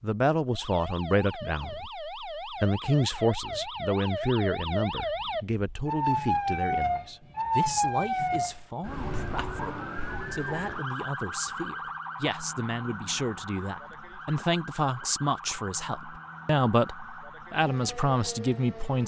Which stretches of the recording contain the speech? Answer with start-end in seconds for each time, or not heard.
0.0-19.0.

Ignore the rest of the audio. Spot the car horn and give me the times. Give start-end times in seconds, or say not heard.
not heard.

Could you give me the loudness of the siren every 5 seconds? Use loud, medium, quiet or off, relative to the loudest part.
medium, loud, medium, quiet.